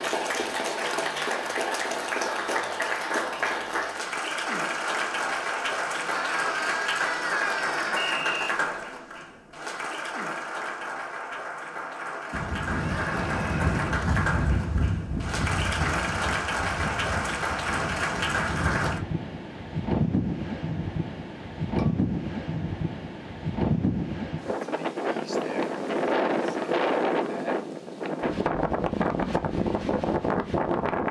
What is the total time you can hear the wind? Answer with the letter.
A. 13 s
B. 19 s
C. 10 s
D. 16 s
B.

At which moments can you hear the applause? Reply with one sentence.
The applause can be heard from 0.0 to 19.0 s.